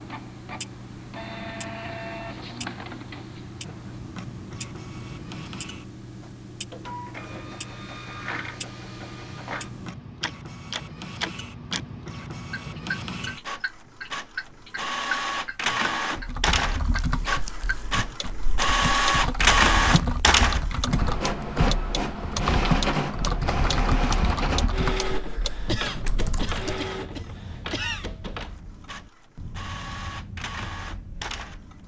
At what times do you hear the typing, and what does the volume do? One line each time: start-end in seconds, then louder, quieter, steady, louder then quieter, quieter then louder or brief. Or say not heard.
16.1-26.9 louder then quieter.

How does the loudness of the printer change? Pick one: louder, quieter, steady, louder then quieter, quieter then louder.
louder then quieter.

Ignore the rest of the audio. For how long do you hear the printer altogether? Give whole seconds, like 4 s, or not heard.
32 s.